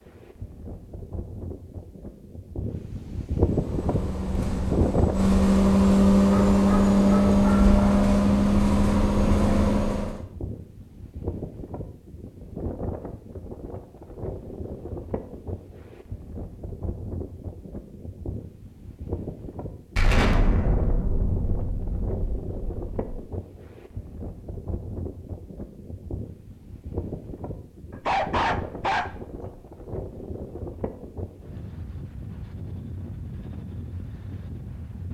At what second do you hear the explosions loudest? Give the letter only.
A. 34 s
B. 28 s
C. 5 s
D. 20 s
D.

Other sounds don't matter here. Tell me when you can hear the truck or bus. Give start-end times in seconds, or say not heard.
3.4-10.2.